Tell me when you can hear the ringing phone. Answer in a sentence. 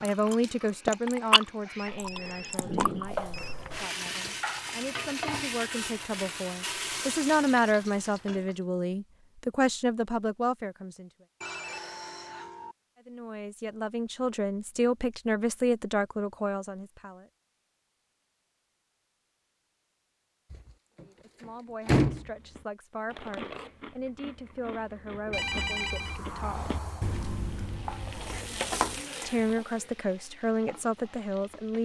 You can hear the ringing phone from 1.8 to 3.5 s, from 11.4 to 12.8 s and from 25.3 to 27.1 s.